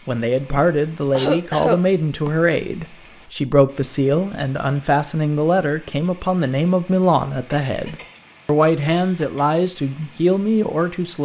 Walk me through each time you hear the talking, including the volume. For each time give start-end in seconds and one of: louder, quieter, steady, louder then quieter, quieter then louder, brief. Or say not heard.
0.1-11.2 steady.